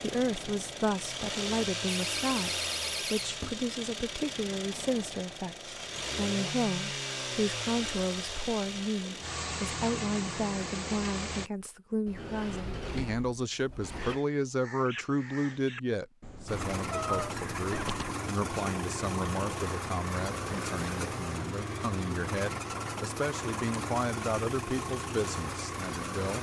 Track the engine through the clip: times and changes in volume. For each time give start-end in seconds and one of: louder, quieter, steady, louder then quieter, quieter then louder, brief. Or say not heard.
0.0-11.5 steady
16.4-26.3 steady.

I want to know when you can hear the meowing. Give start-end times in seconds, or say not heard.
16.9-17.9.